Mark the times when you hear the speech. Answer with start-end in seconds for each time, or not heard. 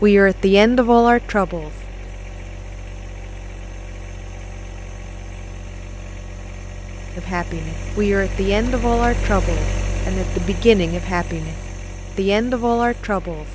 0.0-1.7, 7.2-11.6, 12.2-13.4.